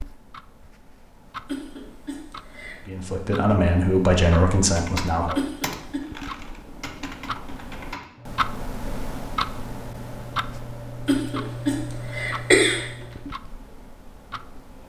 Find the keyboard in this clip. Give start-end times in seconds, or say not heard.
4.7-13.3.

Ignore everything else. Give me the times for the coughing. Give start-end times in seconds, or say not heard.
1.4-2.9, 5.3-6.0, 11.1-12.8.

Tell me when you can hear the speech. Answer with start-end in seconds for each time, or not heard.
2.9-5.4.